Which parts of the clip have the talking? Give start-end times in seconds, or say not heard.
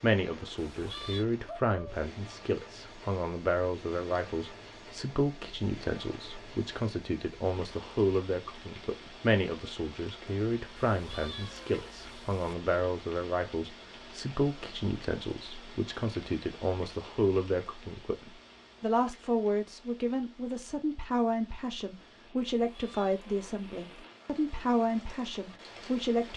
0.0-26.3.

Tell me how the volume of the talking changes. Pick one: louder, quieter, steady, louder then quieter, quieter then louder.
steady.